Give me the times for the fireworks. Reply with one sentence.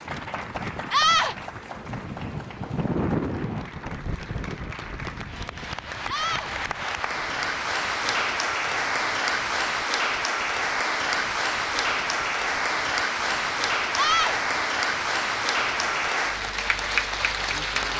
The fireworks can't be heard in this clip.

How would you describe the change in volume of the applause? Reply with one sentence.
The loudness of the applause goes up.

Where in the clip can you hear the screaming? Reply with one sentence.
You can hear the screaming from 0.9 to 1.4 s, from 6.0 to 6.5 s and from 13.9 to 14.4 s.